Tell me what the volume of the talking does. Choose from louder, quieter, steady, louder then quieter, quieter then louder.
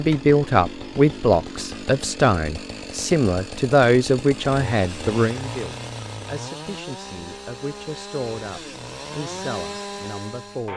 quieter.